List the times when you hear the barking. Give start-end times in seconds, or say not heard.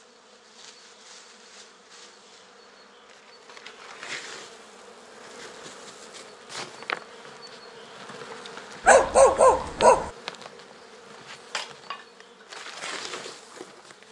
8.8-10.1.